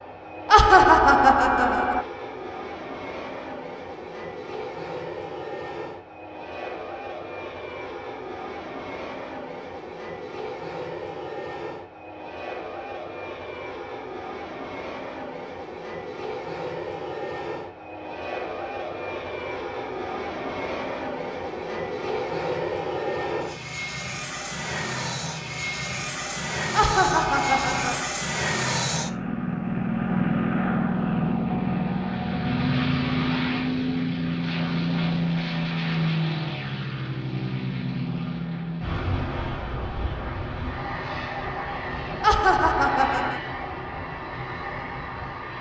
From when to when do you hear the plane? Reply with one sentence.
You can hear the plane from 0.0 to 45.5 s.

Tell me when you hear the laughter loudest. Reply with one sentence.
The loudest moment of the laughter is at 1 second.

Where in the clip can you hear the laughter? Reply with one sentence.
You can hear the laughter from 0.5 to 2.0 s, from 26.7 to 28.1 s and from 42.2 to 43.4 s.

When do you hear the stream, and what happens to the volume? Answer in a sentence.
You can't hear the stream here.